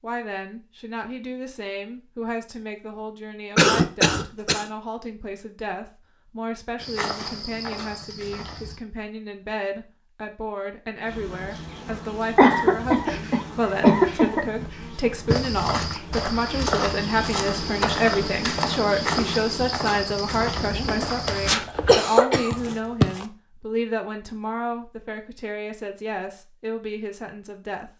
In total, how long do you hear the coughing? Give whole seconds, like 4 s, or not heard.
5 s.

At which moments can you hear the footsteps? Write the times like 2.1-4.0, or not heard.
6.8-8.8, 15.3-21.6.